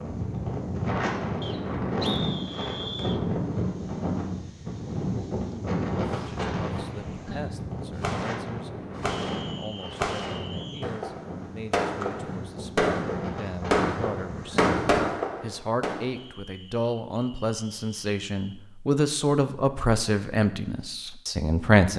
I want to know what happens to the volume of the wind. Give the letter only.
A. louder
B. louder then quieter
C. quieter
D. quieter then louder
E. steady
C.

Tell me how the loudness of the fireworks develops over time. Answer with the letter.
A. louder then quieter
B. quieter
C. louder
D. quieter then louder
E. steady
C.